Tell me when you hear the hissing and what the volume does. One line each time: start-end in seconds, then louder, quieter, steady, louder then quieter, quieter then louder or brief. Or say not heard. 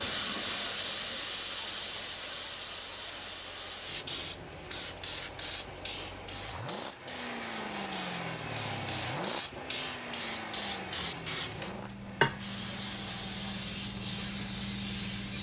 0.0-15.3 quieter then louder.